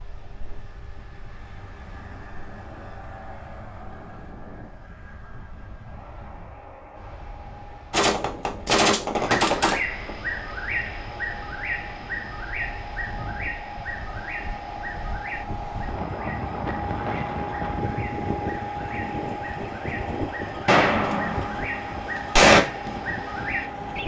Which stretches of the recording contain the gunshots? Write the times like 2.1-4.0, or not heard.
7.9-9.8, 20.6-22.6.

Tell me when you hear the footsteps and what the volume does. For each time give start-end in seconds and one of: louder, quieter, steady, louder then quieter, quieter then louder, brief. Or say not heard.
not heard.